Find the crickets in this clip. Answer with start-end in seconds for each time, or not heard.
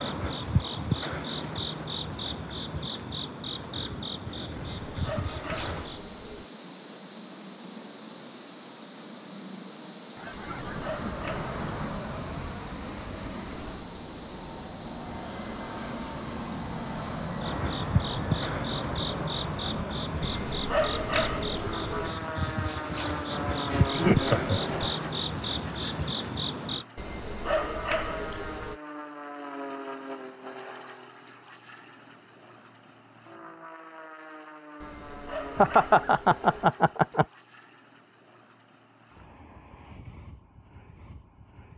0.0-26.9.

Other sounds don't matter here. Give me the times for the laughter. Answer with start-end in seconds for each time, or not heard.
10.2-11.9, 23.7-24.8, 35.5-37.2.